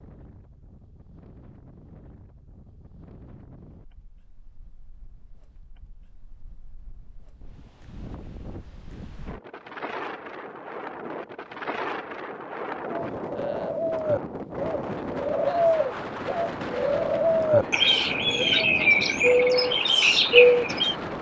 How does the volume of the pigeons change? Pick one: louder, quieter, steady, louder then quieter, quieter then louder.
louder.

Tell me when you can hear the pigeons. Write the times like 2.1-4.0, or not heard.
12.8-20.9.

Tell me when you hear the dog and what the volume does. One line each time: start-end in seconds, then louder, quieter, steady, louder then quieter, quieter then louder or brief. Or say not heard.
not heard.